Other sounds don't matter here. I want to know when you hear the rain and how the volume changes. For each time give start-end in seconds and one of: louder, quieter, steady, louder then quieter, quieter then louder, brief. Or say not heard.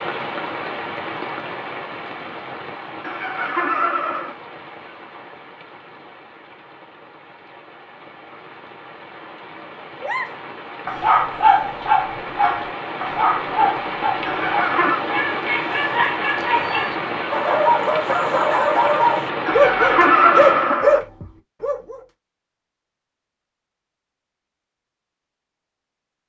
0.0-20.8 quieter then louder.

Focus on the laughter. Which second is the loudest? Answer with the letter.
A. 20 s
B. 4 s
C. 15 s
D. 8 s
A.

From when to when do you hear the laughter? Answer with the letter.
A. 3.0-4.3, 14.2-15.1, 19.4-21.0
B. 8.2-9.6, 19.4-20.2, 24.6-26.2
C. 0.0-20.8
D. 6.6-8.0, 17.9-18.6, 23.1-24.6
A.